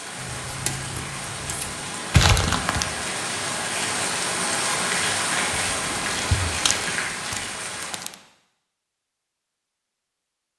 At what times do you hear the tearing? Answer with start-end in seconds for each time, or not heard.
2.1-2.9, 5.5-8.2.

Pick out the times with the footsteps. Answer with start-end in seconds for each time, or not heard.
not heard.